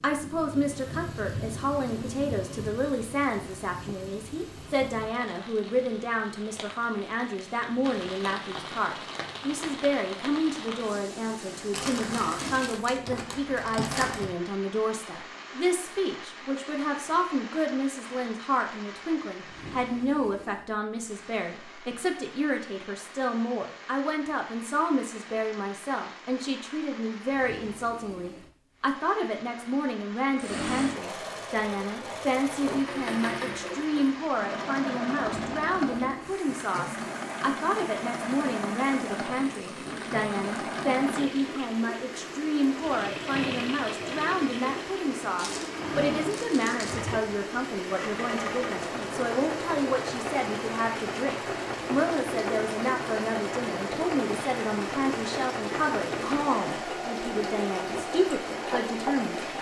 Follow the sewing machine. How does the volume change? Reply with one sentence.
The volume of the sewing machine stays about the same.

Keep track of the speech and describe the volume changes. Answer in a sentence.
The loudness of the speech stays about the same.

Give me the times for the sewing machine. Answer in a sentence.
The sewing machine can be heard from 30.4 to 59.5 s.